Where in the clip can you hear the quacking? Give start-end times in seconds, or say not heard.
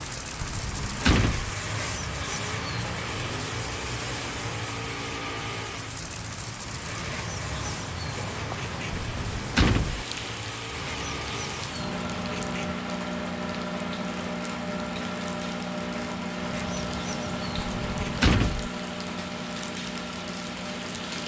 1.6-3.1, 7.0-9.0, 10.7-12.8, 16.4-18.2.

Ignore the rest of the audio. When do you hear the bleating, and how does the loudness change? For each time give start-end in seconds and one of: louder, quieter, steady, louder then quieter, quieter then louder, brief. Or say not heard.
not heard.